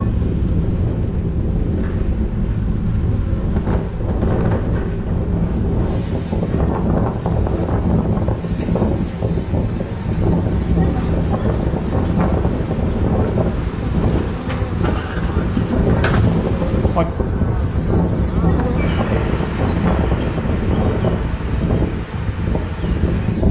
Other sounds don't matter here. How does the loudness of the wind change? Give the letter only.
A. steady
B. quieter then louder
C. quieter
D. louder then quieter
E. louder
A.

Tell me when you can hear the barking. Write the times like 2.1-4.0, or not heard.
not heard.